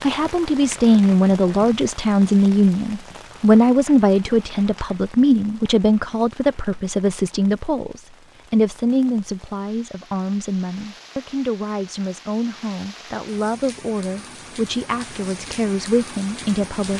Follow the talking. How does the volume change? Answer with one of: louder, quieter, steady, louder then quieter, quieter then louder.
quieter.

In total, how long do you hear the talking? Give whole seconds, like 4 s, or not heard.
17 s.